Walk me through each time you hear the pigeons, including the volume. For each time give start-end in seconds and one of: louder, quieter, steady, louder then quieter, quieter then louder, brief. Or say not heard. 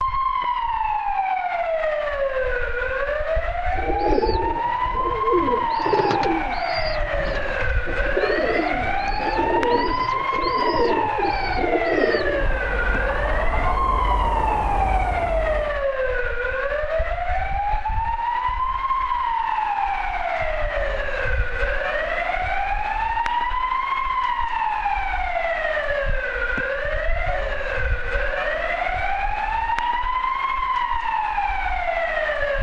3.8-12.7 steady.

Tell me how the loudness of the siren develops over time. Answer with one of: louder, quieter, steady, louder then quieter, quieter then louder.
steady.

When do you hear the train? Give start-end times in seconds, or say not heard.
12.2-15.8.